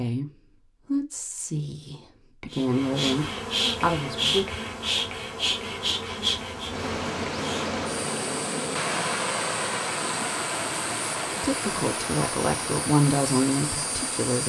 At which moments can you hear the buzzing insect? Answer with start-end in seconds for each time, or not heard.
2.5-14.4.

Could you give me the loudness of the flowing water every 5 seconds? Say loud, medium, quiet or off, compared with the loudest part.
off, loud, loud.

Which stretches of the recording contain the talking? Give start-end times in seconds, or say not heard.
0.0-4.5, 11.4-14.4.